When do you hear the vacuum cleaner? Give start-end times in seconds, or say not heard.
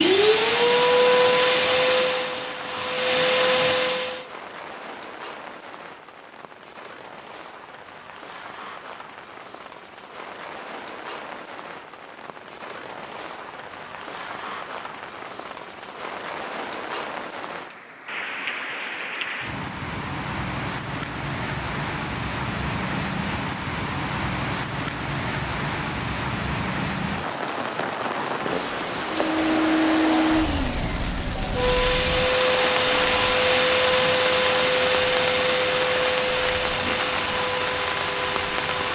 0.0-4.2, 29.1-38.9.